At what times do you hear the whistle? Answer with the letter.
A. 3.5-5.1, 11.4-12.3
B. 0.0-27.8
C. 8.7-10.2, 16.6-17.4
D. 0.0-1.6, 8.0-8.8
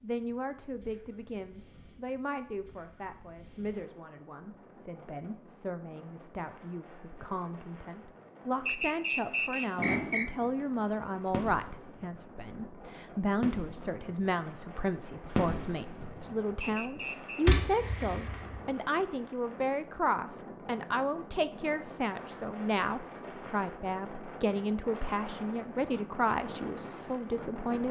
C.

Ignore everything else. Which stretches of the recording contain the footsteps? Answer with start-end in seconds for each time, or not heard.
not heard.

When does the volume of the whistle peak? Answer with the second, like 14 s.
9 s.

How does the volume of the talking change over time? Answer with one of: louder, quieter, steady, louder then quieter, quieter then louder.
louder.